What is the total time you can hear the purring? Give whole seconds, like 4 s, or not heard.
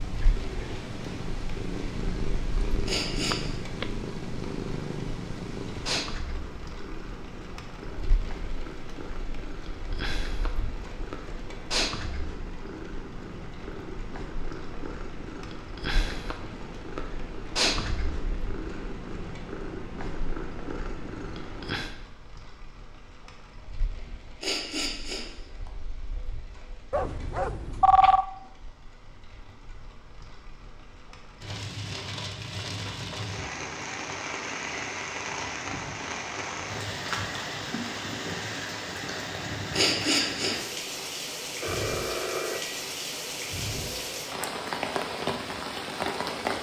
22 s.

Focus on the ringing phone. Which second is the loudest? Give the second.
28 s.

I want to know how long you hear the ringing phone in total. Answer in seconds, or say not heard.
3 s.